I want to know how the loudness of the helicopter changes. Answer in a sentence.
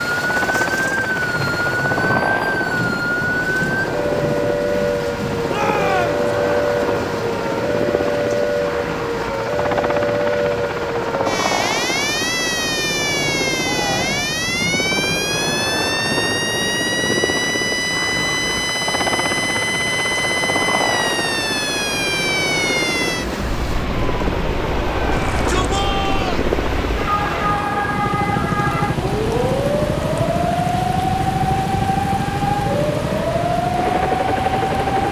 The volume of the helicopter stays about the same.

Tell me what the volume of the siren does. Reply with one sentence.
The volume of the siren stays about the same.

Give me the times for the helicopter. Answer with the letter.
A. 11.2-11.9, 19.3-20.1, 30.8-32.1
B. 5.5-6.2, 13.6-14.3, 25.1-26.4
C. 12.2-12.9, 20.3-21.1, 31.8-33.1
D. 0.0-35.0
D.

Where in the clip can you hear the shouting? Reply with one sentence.
You can hear the shouting from 5.5 to 6.2 s, from 13.6 to 14.3 s and from 25.1 to 26.4 s.